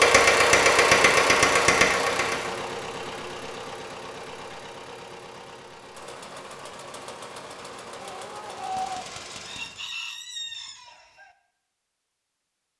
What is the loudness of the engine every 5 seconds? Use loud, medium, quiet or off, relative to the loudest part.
loud, quiet, off.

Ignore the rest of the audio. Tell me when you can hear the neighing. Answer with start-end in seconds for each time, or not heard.
not heard.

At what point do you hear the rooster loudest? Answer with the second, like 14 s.
9 s.